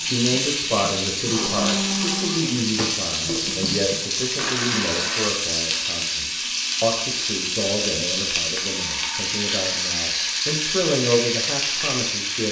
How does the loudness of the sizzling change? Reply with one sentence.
The volume of the sizzling stays about the same.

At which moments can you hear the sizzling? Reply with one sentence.
The sizzling can be heard from 0.0 to 12.4 s.